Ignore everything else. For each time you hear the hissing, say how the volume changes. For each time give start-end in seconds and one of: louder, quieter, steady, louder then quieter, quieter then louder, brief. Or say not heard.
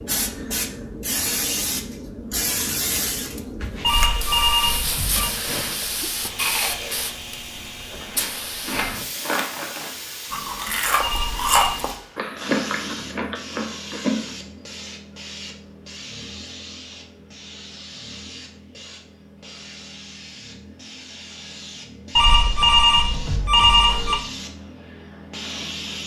0.0-26.0 quieter.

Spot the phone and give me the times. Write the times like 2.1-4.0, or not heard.
3.8-5.3, 11.0-11.8, 22.1-24.1.